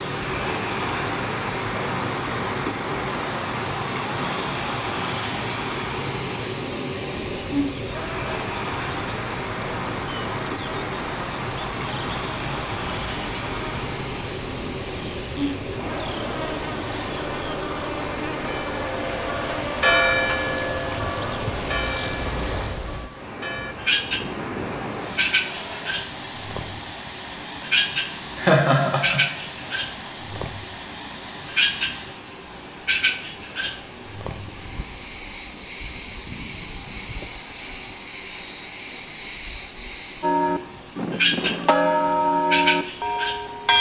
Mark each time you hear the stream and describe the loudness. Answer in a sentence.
The stream can be heard from 0.0 to 43.7 s, getting quieter.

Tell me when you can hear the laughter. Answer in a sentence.
The laughter can be heard from 28.4 to 29.2 s.